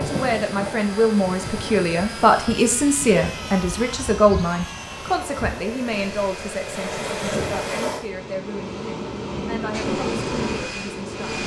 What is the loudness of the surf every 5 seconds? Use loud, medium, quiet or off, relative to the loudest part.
medium, loud, loud.